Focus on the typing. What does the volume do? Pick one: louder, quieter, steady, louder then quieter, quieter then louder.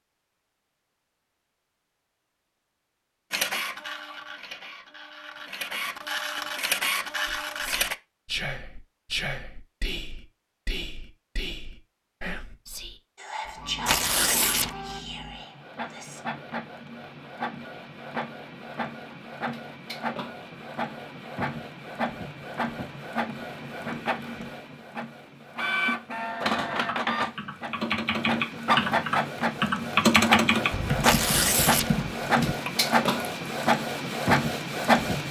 louder then quieter.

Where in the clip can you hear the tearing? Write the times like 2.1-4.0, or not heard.
13.8-14.8, 31.0-31.9.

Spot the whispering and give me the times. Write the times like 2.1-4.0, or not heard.
7.2-16.2.